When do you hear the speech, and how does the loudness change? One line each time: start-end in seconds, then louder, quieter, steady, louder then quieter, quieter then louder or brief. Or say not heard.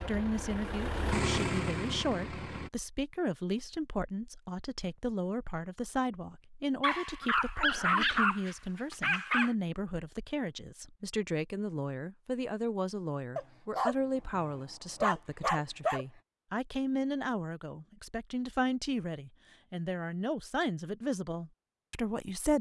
0.1-22.5 steady.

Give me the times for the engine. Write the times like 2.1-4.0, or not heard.
0.0-2.7.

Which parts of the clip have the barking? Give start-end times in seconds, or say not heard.
6.8-9.6, 13.3-16.1.